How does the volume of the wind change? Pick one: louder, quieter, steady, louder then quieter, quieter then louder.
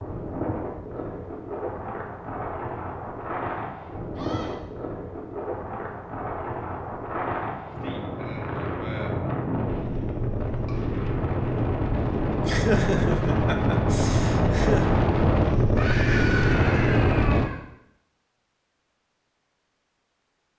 louder.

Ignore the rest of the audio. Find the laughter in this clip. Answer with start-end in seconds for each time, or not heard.
12.4-14.8.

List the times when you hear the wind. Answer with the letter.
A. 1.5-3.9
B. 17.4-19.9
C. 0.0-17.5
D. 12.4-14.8
C.